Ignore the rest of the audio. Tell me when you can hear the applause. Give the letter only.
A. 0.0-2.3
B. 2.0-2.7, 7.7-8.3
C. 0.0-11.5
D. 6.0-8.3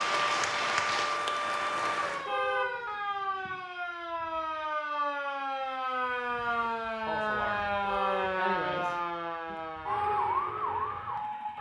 A.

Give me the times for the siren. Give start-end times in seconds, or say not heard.
0.0-11.5.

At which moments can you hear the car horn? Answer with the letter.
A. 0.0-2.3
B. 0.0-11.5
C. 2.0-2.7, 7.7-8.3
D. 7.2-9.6
C.